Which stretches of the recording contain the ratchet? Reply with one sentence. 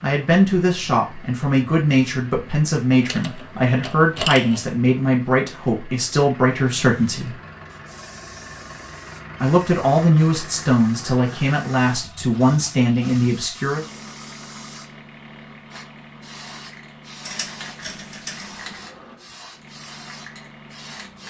The ratchet can be heard from 2.9 to 4.8 s and from 17.2 to 18.9 s.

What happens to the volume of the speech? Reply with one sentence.
The loudness of the speech stays about the same.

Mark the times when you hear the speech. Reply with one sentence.
The speech can be heard from 0.0 to 7.3 s and from 9.4 to 13.8 s.